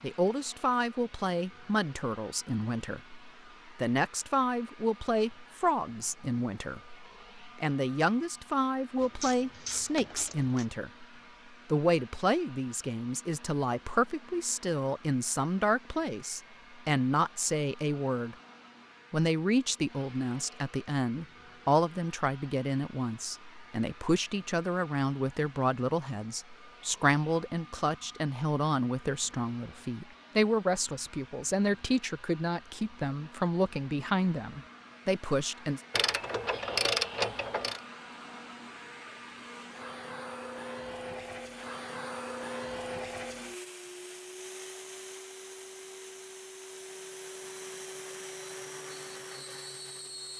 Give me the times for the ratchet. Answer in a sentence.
You can hear the ratchet from 9.0 to 10.7 s and from 35.9 to 37.8 s.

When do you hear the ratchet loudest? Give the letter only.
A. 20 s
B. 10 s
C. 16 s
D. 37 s
D.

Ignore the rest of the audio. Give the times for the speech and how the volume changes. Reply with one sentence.
You can hear the speech from 0.0 to 11.1 s, at a steady volume; from 11.7 to 18.4 s, at a steady volume; and from 19.1 to 35.8 s, at a steady volume.